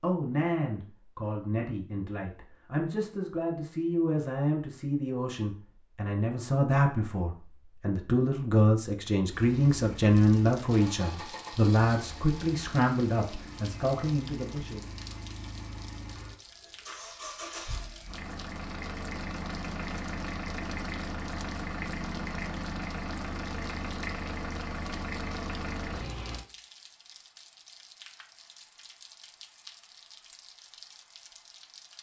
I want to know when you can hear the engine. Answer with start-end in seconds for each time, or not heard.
9.3-26.4.